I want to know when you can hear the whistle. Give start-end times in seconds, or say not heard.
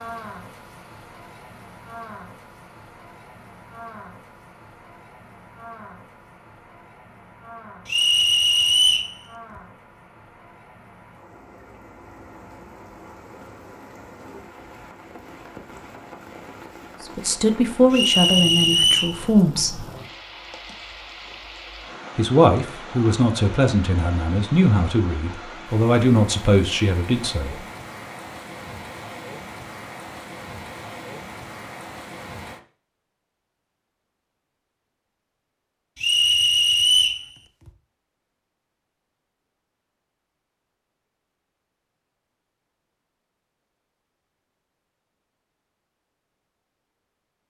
7.8-9.1, 17.9-19.1, 36.0-37.2.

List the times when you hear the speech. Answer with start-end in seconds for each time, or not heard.
17.1-19.8, 22.1-27.6.